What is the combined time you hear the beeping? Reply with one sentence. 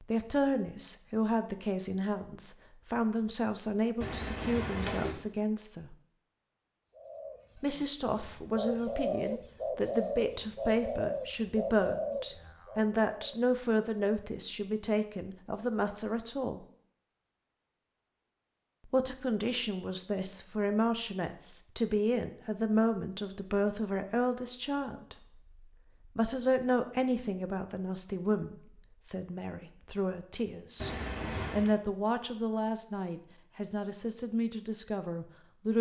You can hear the beeping for 2 seconds altogether.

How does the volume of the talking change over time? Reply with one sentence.
The volume of the talking stays about the same.